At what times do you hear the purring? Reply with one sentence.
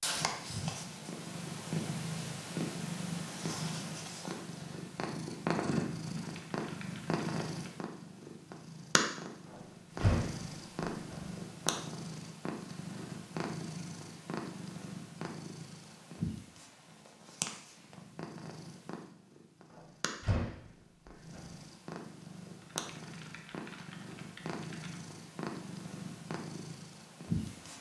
The purring can be heard from 0.0 to 27.7 s.